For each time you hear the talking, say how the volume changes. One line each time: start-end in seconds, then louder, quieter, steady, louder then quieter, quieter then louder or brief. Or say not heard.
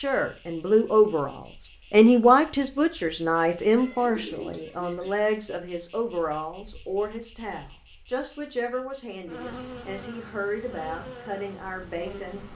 0.0-12.4 quieter.